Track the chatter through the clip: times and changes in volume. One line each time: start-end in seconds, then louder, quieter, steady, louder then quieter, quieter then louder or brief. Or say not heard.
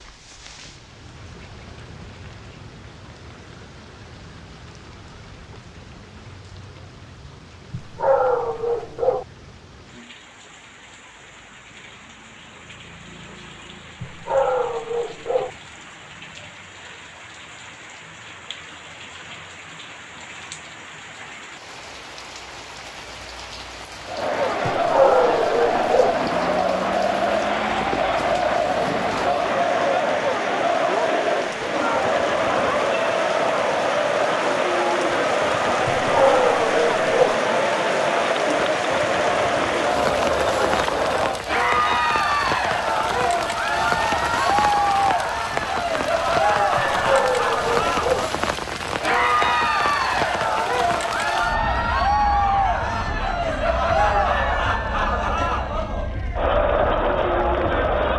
24.1-58.1 steady.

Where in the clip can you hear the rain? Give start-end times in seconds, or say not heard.
0.0-58.1.